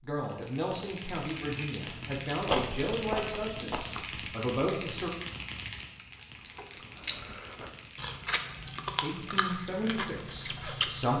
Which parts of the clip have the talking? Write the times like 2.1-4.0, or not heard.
0.0-5.1, 9.0-11.1.